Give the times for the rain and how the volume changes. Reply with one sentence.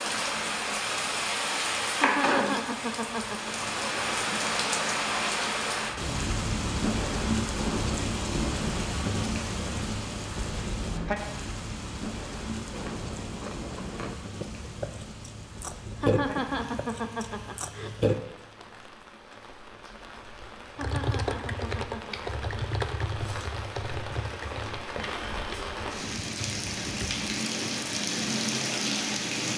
You can hear the rain from 0.0 to 29.5 s, getting quieter then louder.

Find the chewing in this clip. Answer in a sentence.
The chewing can be heard from 12.6 to 18.2 s.